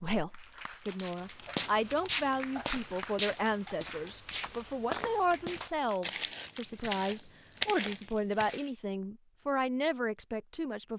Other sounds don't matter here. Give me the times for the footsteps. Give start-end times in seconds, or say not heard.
1.0-8.7.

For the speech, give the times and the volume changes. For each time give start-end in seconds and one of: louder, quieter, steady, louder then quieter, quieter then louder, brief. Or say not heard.
0.0-10.9 steady.